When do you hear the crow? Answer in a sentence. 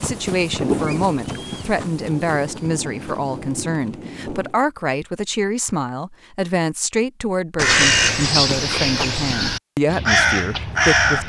You can hear the crow from 7.5 to 11.2 s.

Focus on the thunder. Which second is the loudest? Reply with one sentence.
The loudest moment of the thunder is at 1 second.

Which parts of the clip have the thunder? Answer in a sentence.
The thunder can be heard from 0.6 to 4.5 s.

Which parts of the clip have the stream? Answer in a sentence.
The stream can't be heard in this clip.